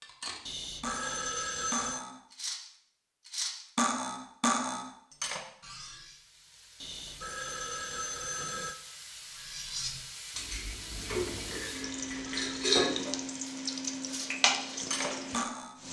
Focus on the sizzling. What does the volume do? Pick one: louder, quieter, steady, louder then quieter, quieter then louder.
louder.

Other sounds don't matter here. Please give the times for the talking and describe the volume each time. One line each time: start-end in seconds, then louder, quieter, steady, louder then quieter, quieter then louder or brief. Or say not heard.
not heard.